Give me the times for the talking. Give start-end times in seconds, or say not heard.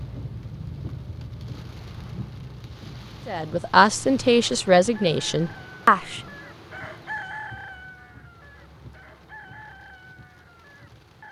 3.2-6.2.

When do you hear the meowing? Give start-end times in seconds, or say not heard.
not heard.